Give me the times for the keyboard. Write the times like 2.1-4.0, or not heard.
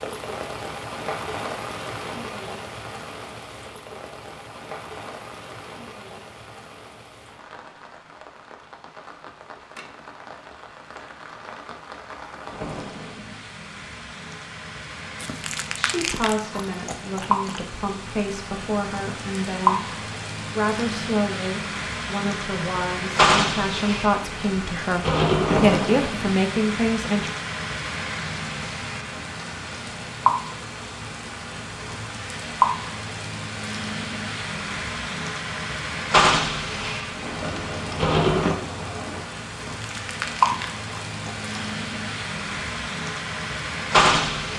37.2-39.2.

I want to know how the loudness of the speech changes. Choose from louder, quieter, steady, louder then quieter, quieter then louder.
louder.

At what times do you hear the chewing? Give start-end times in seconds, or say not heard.
15.2-17.6, 39.5-41.5.